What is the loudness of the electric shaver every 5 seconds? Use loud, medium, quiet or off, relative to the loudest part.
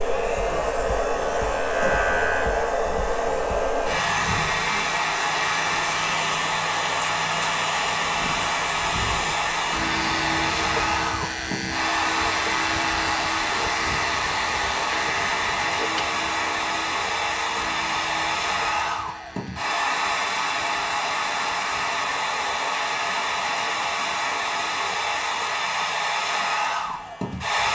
loud, loud, loud, medium, quiet, quiet.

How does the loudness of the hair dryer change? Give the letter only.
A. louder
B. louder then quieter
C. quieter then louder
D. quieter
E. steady
E.